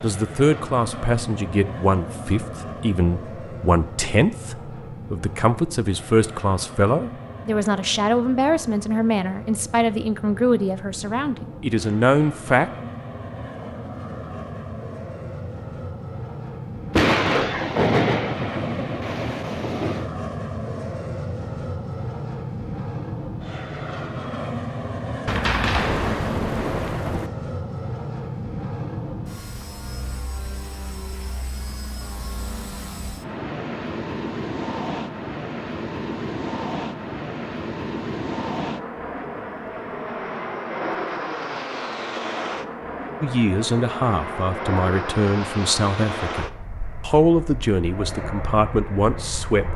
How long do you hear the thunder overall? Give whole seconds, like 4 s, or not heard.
5 s.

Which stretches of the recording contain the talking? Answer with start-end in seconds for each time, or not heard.
0.0-12.7, 43.2-49.7.